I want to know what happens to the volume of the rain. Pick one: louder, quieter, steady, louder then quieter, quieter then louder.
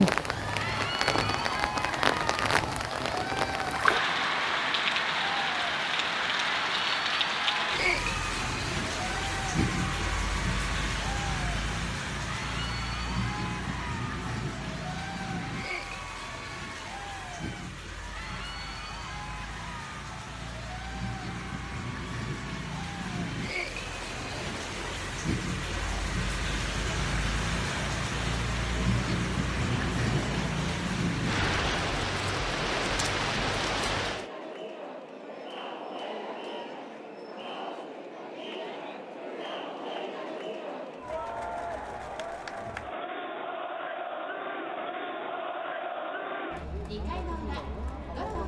quieter then louder.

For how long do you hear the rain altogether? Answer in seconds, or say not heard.
34 s.